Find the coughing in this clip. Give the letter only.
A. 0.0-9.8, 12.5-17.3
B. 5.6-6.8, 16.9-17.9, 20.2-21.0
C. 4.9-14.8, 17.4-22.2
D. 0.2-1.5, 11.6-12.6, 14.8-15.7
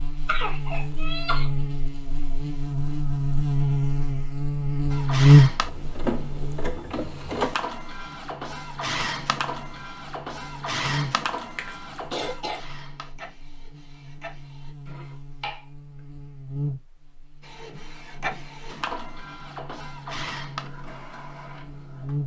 D.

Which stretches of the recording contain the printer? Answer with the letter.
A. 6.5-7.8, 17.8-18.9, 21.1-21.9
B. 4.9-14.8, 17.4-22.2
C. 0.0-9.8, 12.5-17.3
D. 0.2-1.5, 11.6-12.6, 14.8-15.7
B.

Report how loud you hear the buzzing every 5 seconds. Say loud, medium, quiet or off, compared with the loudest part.
medium, loud, quiet, quiet, quiet.